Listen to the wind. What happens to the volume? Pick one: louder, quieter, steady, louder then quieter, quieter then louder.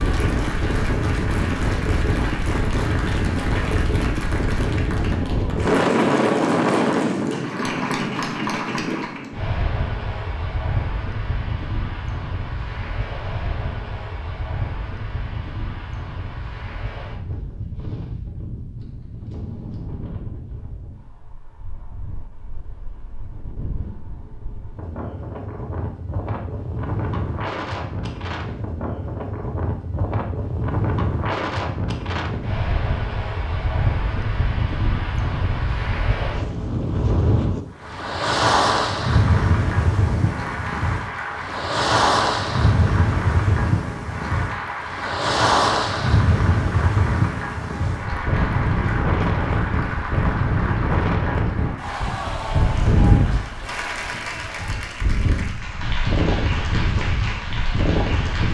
quieter then louder.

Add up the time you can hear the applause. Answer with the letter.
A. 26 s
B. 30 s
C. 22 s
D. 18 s
B.